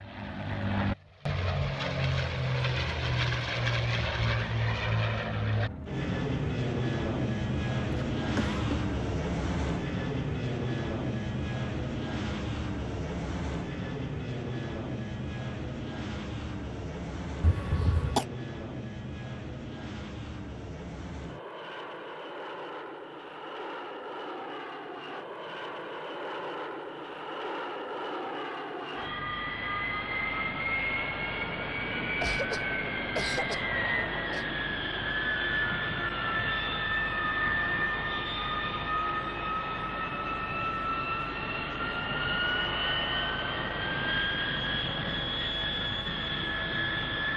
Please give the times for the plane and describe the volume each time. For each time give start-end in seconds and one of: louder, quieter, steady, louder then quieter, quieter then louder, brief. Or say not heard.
0.0-47.3 quieter then louder.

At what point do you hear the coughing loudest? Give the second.
18 s.